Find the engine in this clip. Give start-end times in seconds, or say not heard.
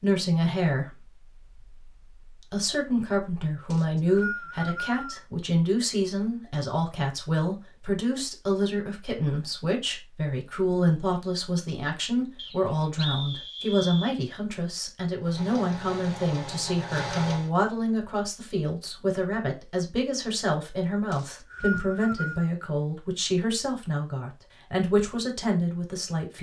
15.2-17.5.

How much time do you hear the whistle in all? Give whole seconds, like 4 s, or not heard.
5 s.